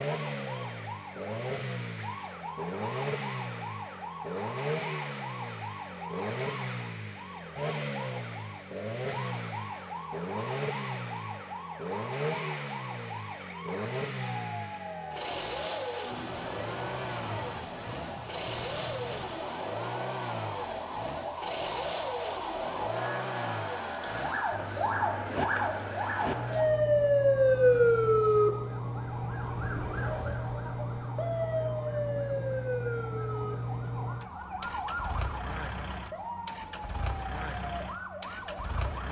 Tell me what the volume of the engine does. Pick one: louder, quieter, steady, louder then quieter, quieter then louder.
steady.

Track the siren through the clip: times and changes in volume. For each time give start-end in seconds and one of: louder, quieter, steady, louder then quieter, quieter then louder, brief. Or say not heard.
0.0-39.0 louder then quieter.